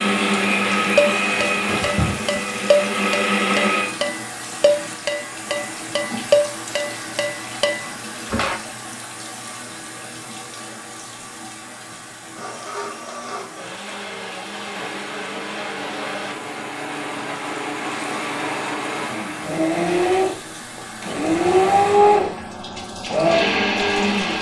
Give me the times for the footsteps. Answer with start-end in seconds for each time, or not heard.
not heard.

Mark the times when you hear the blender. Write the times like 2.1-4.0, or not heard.
0.0-3.9, 12.3-24.3.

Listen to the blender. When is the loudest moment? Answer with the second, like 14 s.
22 s.